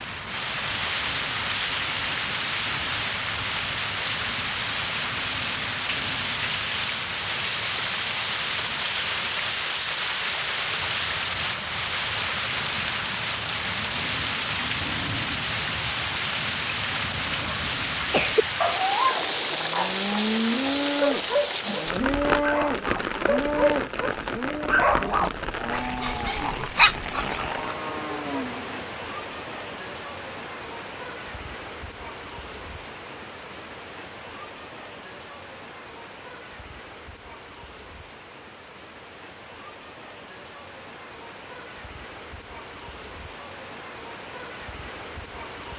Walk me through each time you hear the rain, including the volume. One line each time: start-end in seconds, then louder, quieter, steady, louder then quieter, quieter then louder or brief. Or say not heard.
0.0-45.7 quieter.